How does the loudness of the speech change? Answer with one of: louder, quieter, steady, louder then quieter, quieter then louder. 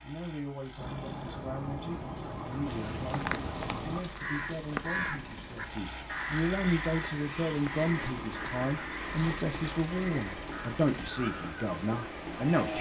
louder.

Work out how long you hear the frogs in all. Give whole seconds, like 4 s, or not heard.
not heard.